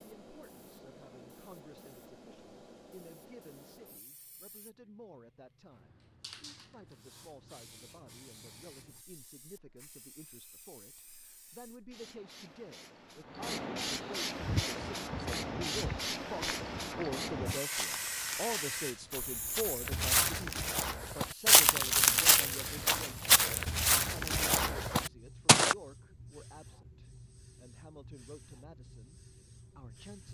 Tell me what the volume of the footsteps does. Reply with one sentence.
The loudness of the footsteps goes up.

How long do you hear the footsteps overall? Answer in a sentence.
The footsteps can be heard for 11 seconds in total.